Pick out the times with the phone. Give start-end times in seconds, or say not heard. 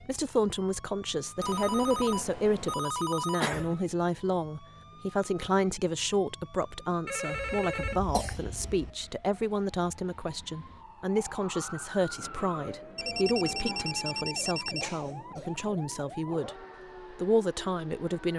1.4-3.5, 7.0-8.0, 12.9-14.9.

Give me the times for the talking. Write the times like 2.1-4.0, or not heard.
0.1-16.5, 17.1-18.3.